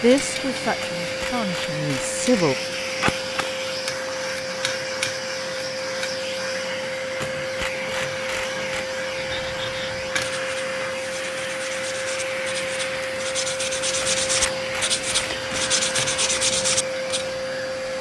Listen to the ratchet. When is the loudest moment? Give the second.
3 s.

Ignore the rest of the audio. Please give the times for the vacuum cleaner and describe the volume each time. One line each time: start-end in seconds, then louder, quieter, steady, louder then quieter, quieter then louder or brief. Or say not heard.
0.0-17.9 steady.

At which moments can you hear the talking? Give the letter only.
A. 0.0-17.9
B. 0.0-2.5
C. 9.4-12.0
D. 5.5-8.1
B.